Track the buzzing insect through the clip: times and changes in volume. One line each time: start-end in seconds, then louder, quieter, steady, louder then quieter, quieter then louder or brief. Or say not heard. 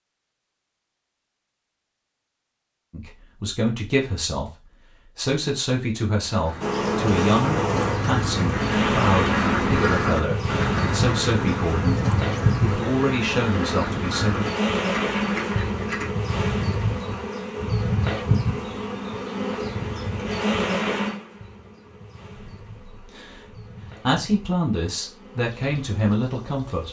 6.6-26.8 quieter.